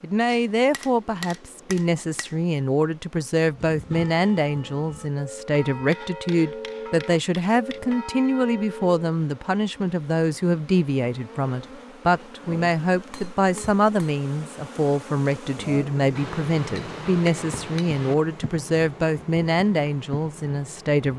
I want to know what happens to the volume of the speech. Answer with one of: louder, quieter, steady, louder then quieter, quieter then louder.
steady.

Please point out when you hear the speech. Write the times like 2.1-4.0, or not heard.
0.0-21.1.